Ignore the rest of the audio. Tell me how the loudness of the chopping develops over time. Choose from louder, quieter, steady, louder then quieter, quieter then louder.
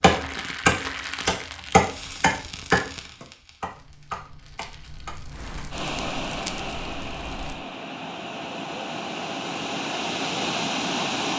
quieter.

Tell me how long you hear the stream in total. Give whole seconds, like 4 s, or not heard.
6 s.